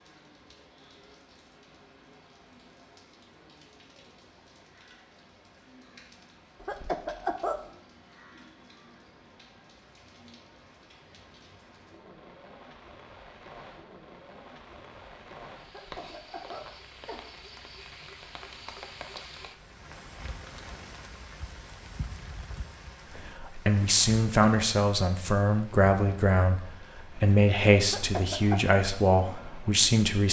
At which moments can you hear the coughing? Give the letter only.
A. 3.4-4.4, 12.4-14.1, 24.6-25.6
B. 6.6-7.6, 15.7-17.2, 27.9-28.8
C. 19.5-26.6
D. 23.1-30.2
B.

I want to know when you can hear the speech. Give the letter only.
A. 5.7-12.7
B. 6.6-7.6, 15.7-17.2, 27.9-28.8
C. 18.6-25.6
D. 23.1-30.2
D.